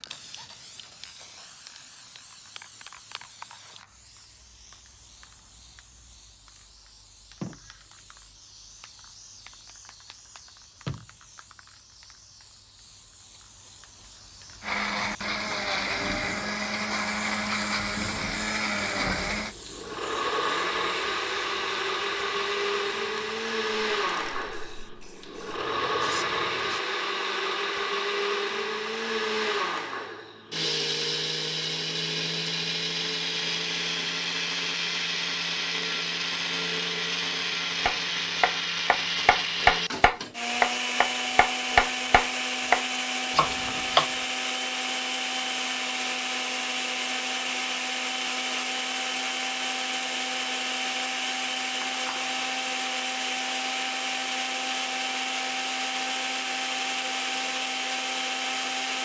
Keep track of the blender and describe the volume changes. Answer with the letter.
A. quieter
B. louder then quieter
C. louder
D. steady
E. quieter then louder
D.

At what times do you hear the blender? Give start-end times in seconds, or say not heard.
14.6-59.0.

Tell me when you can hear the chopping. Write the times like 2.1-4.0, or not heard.
37.9-44.1.